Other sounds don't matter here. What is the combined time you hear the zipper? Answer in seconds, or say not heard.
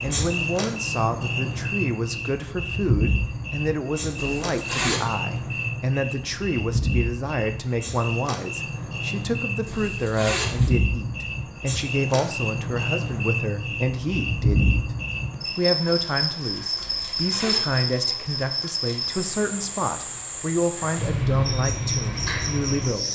3 s.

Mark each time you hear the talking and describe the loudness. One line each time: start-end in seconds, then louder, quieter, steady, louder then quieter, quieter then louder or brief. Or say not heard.
0.0-23.1 steady.